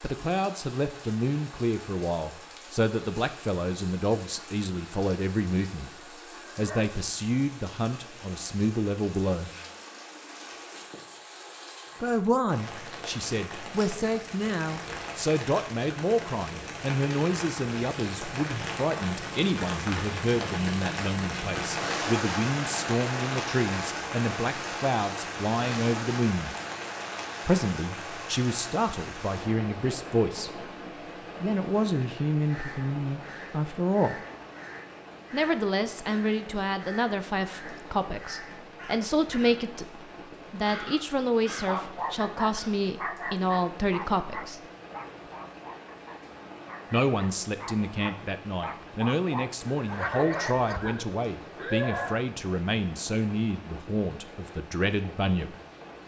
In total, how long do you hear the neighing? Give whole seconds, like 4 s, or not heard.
3 s.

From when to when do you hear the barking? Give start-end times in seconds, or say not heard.
41.5-51.0.